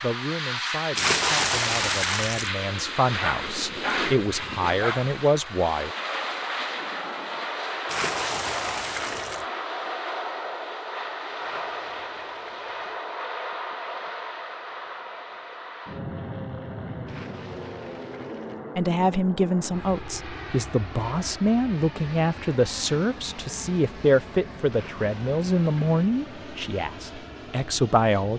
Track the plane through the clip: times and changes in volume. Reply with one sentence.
You can hear the plane from 0.0 to 28.3 s, getting quieter.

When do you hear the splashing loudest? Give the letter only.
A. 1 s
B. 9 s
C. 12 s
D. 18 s
A.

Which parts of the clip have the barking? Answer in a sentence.
You can hear the barking from 3.2 to 5.1 s.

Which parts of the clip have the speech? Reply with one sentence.
You can hear the speech from 0.0 to 5.9 s and from 18.8 to 28.3 s.